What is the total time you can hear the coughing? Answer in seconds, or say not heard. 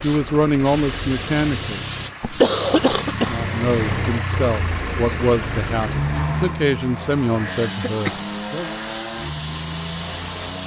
2 s.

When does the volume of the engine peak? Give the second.
4 s.